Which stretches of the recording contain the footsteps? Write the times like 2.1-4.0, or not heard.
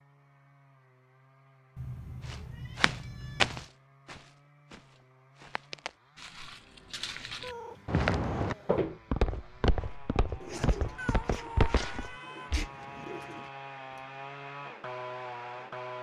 2.2-12.7.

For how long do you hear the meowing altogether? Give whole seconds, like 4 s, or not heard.
5 s.